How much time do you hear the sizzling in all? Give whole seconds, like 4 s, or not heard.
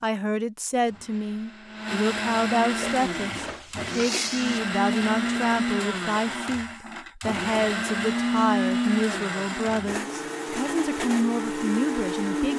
2 s.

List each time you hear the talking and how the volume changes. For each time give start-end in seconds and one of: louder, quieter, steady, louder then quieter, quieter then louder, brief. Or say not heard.
0.0-12.5 steady.